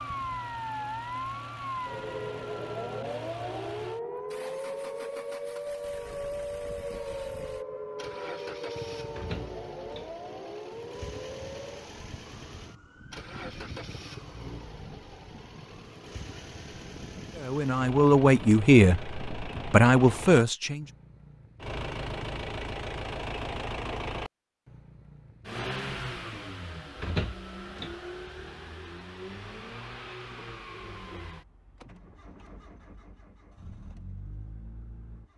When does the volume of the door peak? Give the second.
27 s.